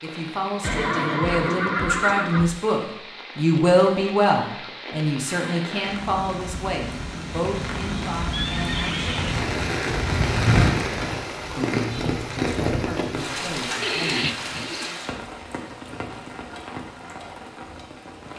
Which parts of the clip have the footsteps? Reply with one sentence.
You can't hear the footsteps here.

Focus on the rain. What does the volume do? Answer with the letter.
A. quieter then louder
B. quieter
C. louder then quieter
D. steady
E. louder
C.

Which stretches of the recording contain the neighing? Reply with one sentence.
The neighing can be heard from 0.6 to 2.6 s, from 8.3 to 9.4 s and from 13.8 to 14.9 s.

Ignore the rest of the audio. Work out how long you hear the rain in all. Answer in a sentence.
The rain can be heard for 18 seconds in total.